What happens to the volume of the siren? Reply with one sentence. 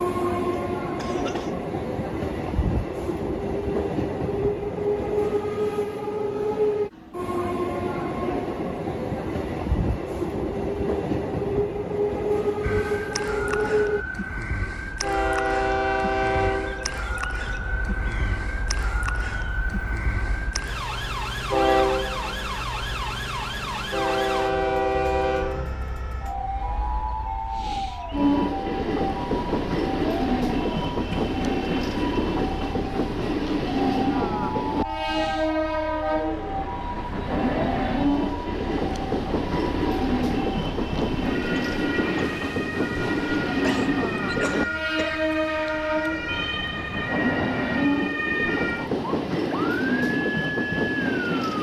The loudness of the siren stays about the same.